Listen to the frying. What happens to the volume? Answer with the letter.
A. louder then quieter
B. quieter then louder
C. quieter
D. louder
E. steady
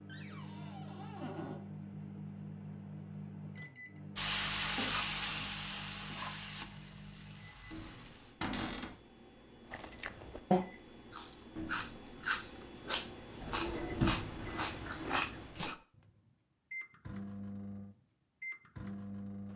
C.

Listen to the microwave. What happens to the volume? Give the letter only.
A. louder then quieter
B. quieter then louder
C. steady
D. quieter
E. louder
B.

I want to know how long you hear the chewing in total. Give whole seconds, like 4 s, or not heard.
6 s.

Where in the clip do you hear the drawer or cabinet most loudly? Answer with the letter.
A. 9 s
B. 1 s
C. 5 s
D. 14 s
D.